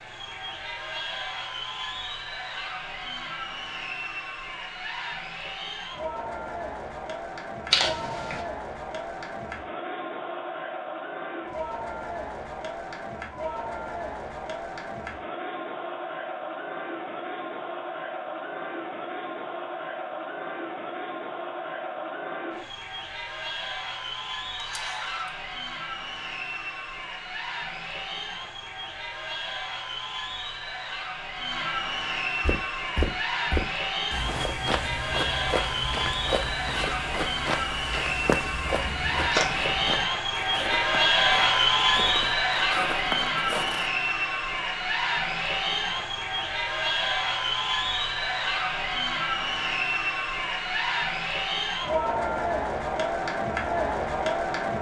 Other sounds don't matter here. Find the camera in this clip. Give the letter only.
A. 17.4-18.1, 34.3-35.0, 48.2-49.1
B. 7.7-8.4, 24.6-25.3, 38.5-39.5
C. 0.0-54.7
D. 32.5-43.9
B.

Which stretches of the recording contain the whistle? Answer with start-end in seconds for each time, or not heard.
not heard.